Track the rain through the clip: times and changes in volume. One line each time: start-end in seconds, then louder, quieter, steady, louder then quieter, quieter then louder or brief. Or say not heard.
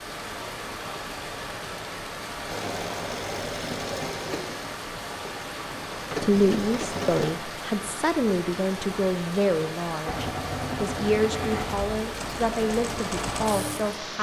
0.0-14.1 steady.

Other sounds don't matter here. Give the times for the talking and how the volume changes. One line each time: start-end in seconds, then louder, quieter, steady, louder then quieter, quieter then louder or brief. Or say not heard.
6.2-14.1 steady.